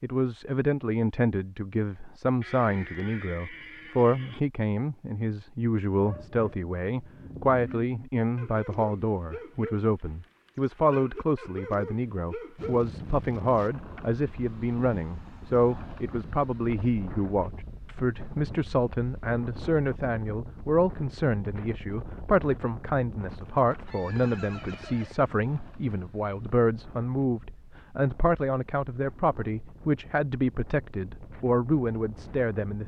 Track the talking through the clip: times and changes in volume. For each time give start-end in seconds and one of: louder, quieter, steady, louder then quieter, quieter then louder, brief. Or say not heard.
0.0-32.8 steady.